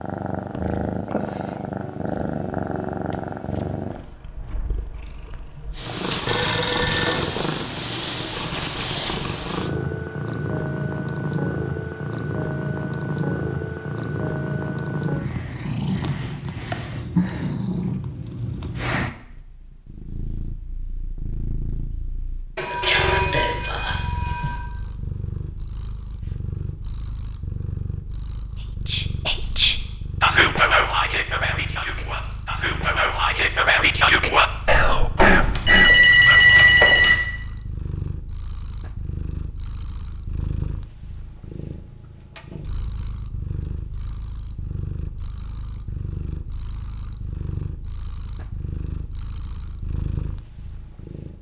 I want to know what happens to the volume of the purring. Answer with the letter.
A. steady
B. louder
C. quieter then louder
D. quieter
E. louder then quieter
D.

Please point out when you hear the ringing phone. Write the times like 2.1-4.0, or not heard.
6.2-7.2, 22.6-24.6, 35.1-37.2.